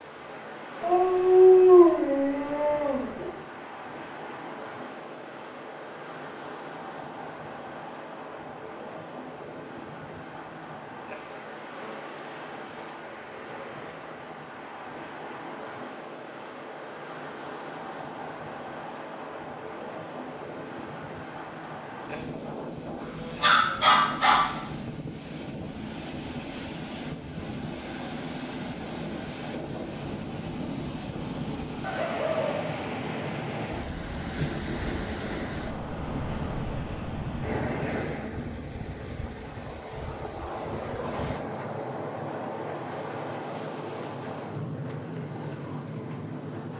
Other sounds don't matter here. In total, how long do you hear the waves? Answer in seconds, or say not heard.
47 s.